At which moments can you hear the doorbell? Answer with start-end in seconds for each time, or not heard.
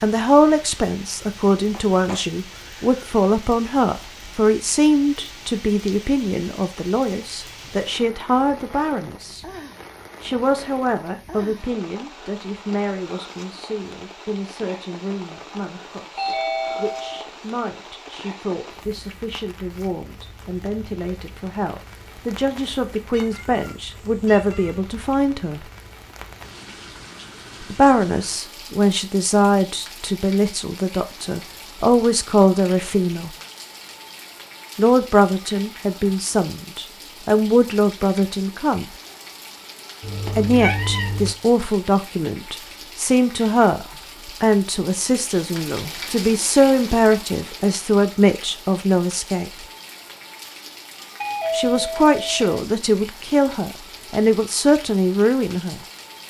16.1-17.2, 51.2-52.6.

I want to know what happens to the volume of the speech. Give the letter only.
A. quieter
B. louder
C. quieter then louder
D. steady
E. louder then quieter
C.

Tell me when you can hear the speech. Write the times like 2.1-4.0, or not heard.
0.0-9.4, 10.2-25.6, 27.6-33.3, 34.8-38.9, 40.2-49.6, 51.5-55.8.